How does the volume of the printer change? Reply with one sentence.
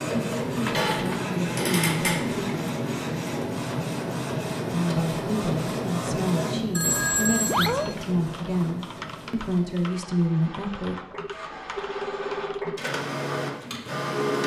The volume of the printer goes down, then up.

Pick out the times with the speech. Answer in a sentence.
You can hear the speech from 0.1 to 2.4 s and from 4.7 to 10.9 s.